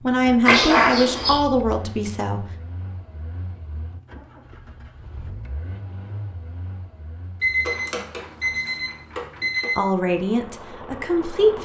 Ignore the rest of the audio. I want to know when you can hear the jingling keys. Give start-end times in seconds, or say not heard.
not heard.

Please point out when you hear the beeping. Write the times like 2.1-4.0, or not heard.
0.5-1.4, 7.4-9.8.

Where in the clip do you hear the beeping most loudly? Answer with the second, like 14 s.
1 s.